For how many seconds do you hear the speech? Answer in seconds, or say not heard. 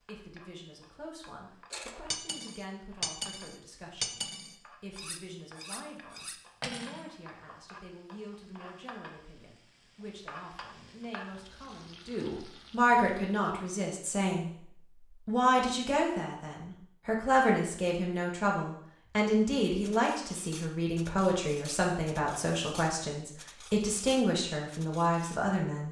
26 s.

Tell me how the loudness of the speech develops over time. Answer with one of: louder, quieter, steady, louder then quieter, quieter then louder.
louder.